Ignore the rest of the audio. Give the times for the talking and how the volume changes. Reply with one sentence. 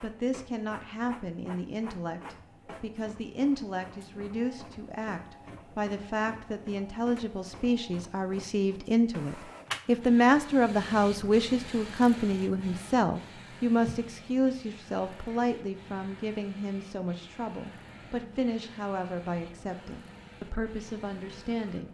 You can hear the talking from 0.0 to 21.9 s, getting louder then quieter.